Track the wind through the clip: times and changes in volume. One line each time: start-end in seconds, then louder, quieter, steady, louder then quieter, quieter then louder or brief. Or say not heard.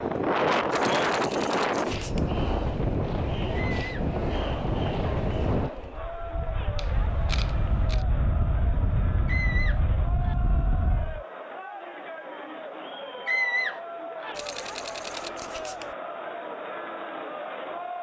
0.0-11.2 quieter.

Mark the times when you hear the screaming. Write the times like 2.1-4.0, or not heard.
3.5-4.0, 9.2-10.3, 13.2-14.3.